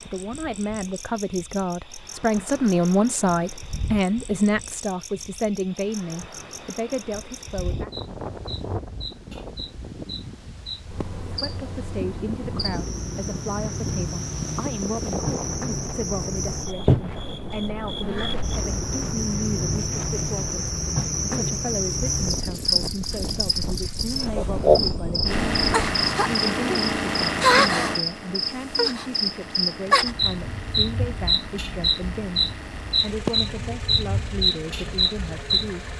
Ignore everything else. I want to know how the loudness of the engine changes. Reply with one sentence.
The volume of the engine goes down.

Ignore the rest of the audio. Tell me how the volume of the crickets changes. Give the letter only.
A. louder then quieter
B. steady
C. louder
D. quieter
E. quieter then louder
C.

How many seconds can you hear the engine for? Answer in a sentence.
The engine can be heard for 11 seconds in total.